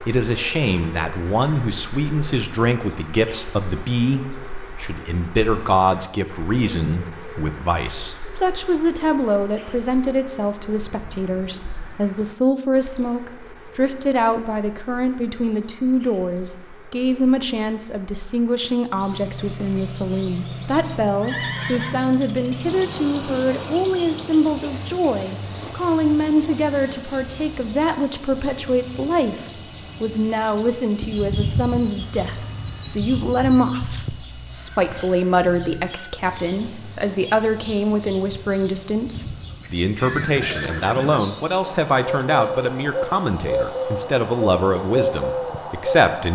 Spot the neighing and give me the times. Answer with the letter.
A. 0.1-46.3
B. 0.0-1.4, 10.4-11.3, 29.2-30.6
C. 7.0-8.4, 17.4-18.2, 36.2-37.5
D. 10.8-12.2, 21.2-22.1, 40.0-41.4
D.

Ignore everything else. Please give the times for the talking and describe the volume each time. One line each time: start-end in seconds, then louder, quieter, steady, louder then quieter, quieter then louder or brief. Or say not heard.
0.1-46.3 steady.